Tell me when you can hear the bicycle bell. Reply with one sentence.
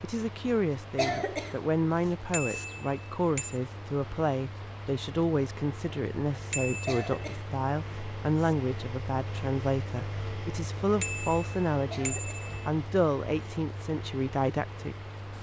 You can hear the bicycle bell from 2.3 to 3.6 s, from 6.5 to 7.2 s and from 11.0 to 12.7 s.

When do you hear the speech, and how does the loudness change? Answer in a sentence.
The speech can be heard from 0.0 to 14.9 s, at a steady volume.